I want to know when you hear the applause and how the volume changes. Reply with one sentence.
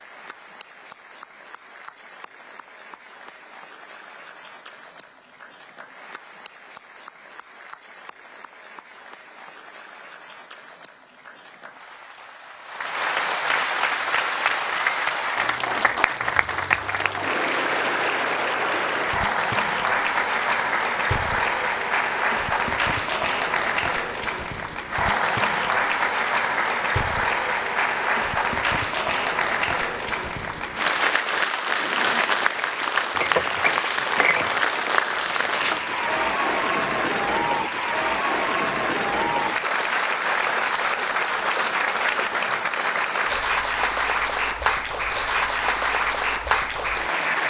The applause can be heard from 0.0 to 47.4 s, getting louder.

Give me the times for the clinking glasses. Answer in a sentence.
The clinking glasses can be heard from 33.1 to 34.6 s.